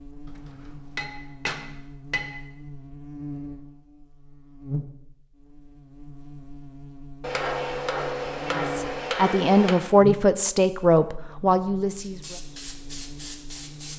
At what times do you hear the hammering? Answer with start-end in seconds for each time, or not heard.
0.2-2.4, 7.2-9.8.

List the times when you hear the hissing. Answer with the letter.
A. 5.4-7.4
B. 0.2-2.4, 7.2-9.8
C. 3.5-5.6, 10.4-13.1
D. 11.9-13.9
D.